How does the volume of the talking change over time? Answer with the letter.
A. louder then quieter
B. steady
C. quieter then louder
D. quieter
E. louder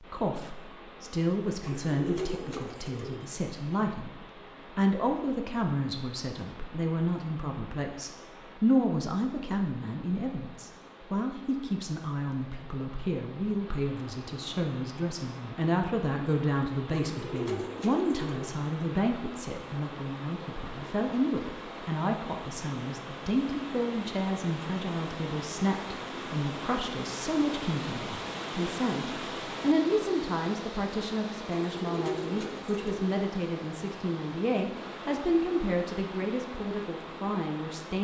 B.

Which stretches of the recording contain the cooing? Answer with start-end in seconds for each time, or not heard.
1.6-3.3, 16.9-18.6, 31.5-33.1.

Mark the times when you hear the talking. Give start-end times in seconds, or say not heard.
0.0-4.2, 4.8-38.0.